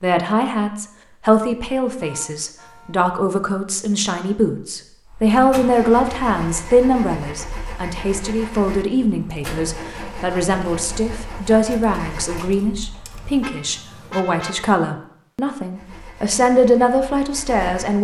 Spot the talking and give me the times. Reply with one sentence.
You can hear the talking from 0.0 to 17.9 s.